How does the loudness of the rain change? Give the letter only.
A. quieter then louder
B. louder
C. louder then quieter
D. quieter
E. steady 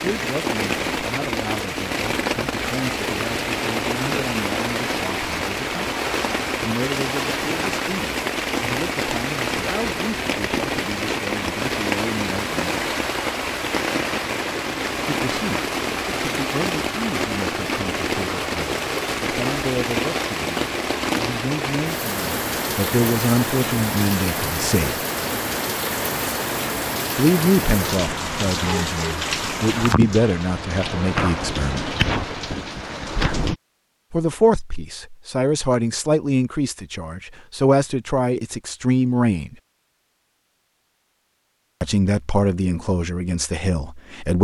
E.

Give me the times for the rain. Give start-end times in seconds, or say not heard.
0.0-33.5.